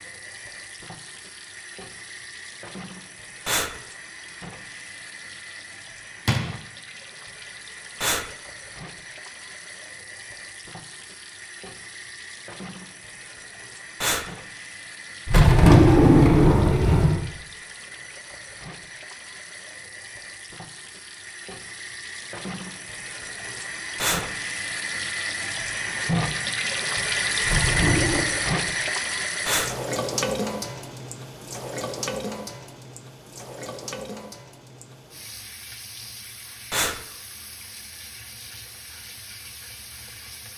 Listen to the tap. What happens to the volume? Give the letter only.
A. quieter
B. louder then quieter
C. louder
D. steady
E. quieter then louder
B.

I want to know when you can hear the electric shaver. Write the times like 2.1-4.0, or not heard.
not heard.